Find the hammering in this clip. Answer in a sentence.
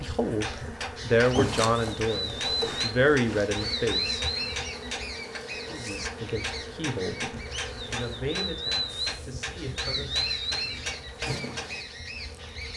You can hear the hammering from 0.2 to 11.8 s.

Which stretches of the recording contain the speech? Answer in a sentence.
The speech can be heard from 0.0 to 4.2 s and from 5.7 to 10.3 s.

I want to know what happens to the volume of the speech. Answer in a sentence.
The volume of the speech goes down.